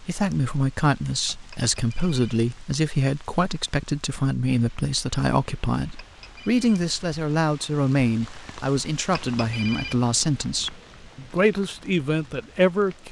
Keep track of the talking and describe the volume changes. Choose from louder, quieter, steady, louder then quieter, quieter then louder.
steady.